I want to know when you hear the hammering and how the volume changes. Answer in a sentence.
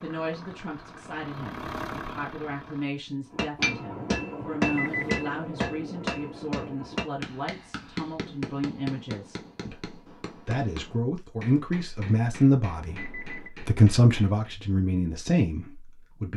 The hammering can be heard from 3.3 to 14.4 s, getting quieter.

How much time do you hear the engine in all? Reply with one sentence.
You can hear the engine for 3 seconds altogether.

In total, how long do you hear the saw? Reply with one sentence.
You can't hear the saw here.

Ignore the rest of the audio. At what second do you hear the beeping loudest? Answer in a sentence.
The loudest moment of the beeping is at 5 seconds.